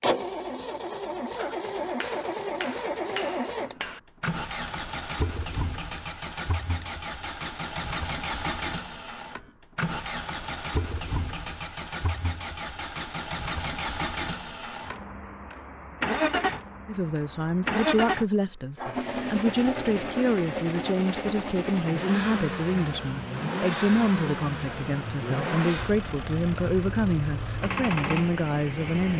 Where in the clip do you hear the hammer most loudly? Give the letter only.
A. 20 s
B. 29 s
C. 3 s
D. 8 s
C.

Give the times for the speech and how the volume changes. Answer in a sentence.
The speech can be heard from 16.9 to 29.1 s, at a steady volume.